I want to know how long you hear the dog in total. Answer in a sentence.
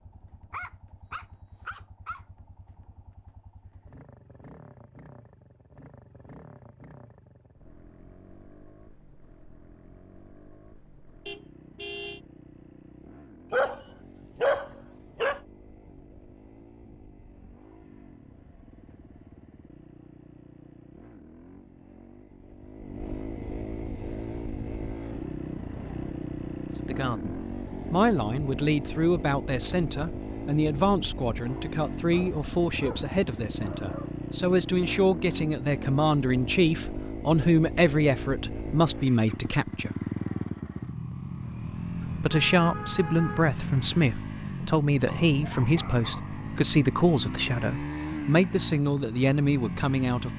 The dog can be heard for 7 seconds in total.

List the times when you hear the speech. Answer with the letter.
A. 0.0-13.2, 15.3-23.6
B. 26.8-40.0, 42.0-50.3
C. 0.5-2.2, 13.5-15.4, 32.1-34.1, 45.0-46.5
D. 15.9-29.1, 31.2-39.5
B.